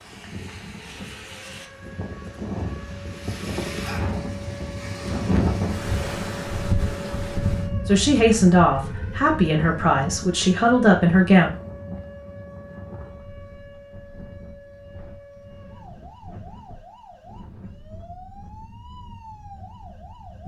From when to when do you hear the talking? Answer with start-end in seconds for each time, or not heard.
7.8-11.5.